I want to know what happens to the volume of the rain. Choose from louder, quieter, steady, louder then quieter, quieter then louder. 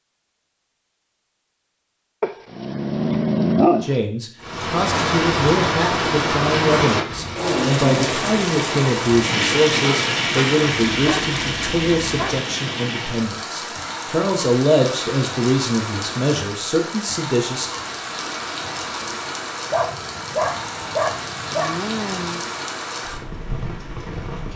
quieter.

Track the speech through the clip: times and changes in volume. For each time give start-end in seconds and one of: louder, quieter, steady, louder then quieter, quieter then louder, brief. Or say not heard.
3.8-17.7 steady.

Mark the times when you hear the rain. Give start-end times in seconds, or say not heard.
4.4-24.5.